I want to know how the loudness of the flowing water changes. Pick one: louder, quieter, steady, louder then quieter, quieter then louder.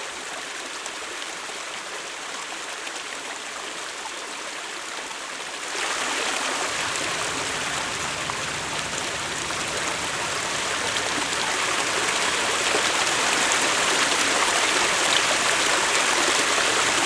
louder.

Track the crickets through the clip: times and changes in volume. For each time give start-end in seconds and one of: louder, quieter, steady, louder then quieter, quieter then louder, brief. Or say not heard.
not heard.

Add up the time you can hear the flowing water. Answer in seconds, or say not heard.
17 s.